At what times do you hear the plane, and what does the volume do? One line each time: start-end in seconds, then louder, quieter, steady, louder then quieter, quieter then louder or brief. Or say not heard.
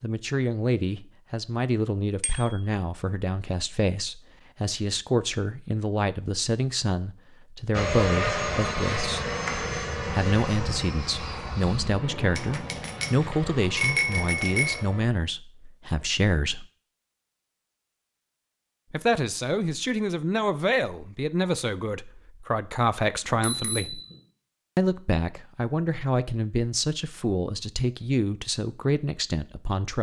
7.7-15.1 quieter.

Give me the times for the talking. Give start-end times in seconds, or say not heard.
0.0-9.2, 10.1-16.6, 18.9-24.0, 24.8-29.9.